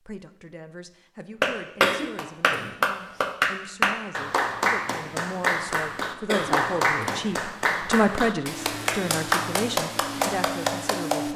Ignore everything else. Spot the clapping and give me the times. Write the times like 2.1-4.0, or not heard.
1.4-11.3.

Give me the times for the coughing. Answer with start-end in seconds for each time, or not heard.
1.8-2.7, 6.2-7.2.